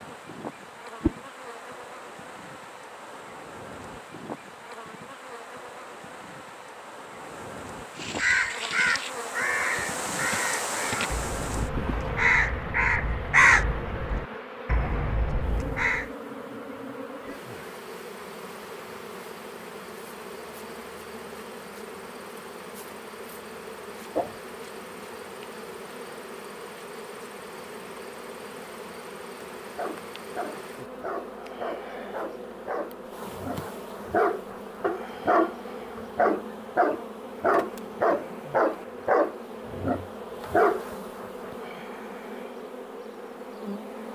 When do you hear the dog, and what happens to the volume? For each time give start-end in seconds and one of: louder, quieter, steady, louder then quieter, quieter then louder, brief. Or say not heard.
29.6-40.9 louder.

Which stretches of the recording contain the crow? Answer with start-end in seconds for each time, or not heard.
8.0-16.1.